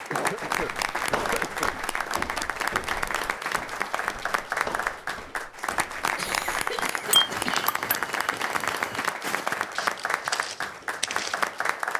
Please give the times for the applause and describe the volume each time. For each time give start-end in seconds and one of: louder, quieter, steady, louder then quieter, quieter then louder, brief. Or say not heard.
0.0-11.9 steady.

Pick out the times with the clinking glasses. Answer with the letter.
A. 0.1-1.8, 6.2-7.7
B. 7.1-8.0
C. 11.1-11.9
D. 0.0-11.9
B.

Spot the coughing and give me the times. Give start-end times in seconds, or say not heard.
0.1-1.8, 6.2-7.7.